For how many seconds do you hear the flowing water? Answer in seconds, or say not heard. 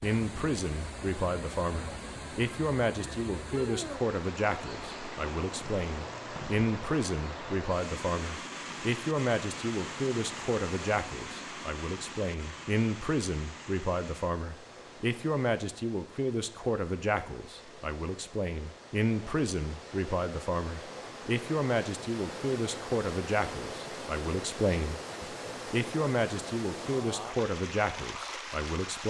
29 s.